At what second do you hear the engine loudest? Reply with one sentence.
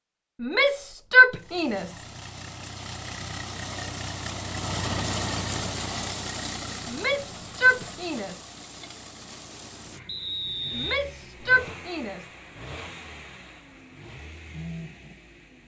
The volume of the engine peaks at 5 seconds.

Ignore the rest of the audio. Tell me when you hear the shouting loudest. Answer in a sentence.
The volume of the shouting peaks at 1 second.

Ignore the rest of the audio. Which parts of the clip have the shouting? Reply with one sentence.
The shouting can be heard from 0.4 to 2.0 s, from 6.8 to 8.3 s and from 10.8 to 12.2 s.